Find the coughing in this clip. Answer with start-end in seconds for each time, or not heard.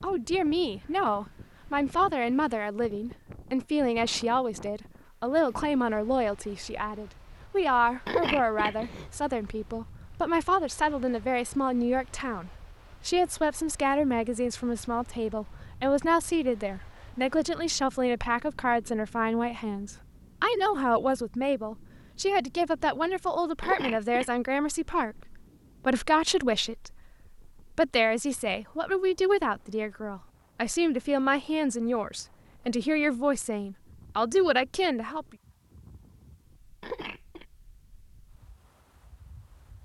8.1-9.1, 23.6-24.2, 36.8-37.5.